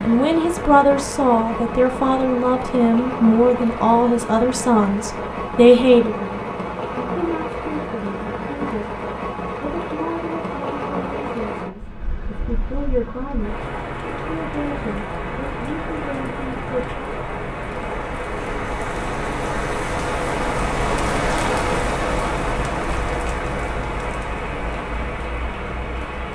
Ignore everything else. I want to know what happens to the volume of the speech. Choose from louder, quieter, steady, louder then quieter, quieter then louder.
quieter.